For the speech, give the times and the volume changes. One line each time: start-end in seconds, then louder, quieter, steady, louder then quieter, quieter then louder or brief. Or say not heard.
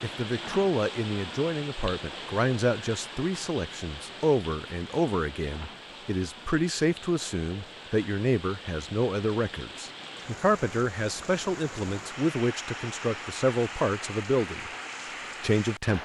0.0-14.7 steady
15.4-16.0 brief.